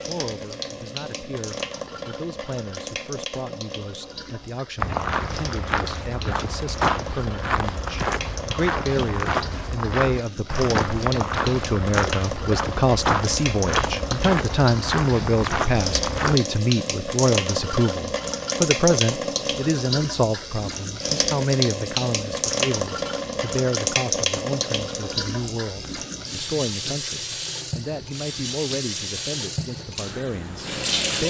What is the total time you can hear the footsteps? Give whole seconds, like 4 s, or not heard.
12 s.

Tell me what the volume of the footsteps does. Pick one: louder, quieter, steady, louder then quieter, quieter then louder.
steady.